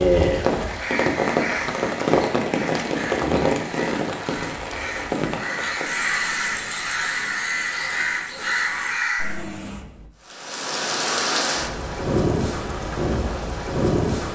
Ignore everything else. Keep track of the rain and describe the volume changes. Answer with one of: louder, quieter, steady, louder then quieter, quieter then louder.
quieter then louder.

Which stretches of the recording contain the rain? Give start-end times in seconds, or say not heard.
0.0-14.2.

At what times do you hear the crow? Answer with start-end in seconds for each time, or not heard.
0.6-9.4.